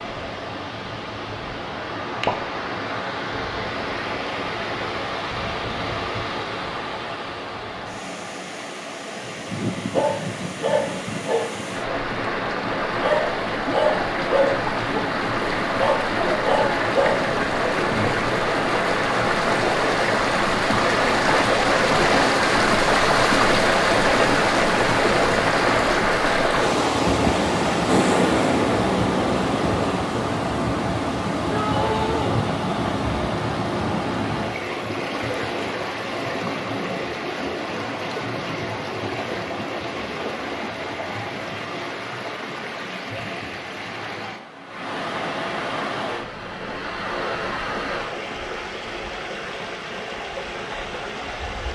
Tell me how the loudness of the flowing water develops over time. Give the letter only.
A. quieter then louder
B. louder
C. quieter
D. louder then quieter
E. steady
D.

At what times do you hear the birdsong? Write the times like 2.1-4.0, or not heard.
not heard.